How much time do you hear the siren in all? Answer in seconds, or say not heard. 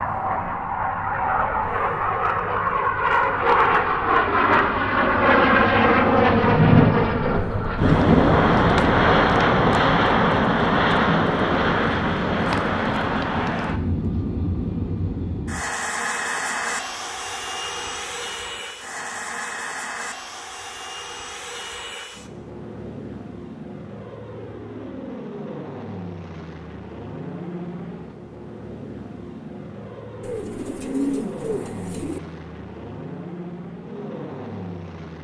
not heard.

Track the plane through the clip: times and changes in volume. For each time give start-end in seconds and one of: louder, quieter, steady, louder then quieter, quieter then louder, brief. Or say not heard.
0.0-35.1 quieter.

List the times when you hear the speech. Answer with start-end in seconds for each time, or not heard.
not heard.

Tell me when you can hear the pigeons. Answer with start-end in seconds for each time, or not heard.
30.2-32.2.